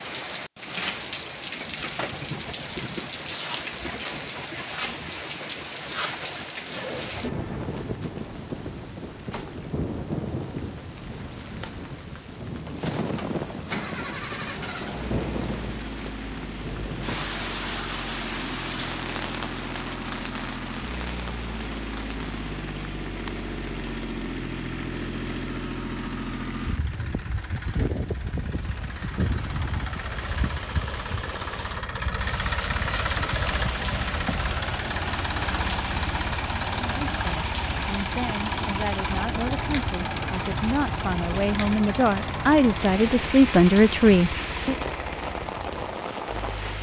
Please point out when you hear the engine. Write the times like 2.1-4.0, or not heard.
13.1-46.7.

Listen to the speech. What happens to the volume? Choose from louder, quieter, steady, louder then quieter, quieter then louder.
louder.